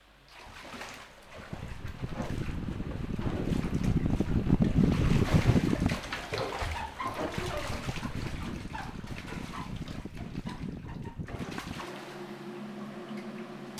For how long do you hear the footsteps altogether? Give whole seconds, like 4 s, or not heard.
not heard.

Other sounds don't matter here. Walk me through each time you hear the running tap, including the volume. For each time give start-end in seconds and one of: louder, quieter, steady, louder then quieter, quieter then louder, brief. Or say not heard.
0.2-13.7 louder then quieter.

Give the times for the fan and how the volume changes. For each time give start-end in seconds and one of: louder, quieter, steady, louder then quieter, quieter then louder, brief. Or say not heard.
0.0-13.7 louder then quieter.